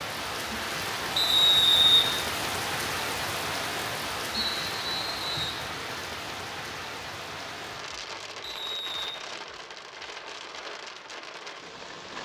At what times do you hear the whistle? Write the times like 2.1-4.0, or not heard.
1.1-2.0, 4.3-5.6, 8.4-9.1.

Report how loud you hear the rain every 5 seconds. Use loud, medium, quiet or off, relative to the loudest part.
loud, medium, medium.